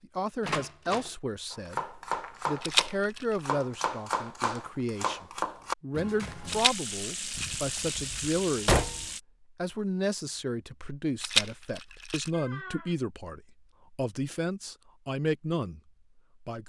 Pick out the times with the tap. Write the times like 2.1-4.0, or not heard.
6.5-9.2.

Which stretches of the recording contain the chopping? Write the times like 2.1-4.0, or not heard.
1.5-6.7.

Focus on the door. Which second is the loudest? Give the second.
9 s.